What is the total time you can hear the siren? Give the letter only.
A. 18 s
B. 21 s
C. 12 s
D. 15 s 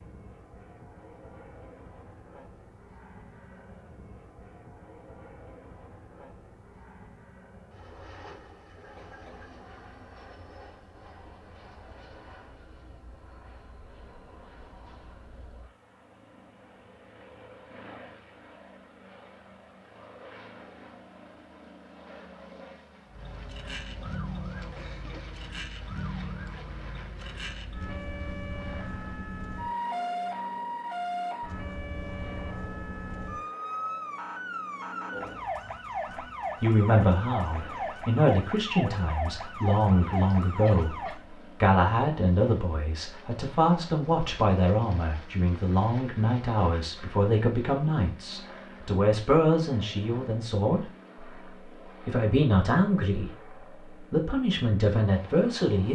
A.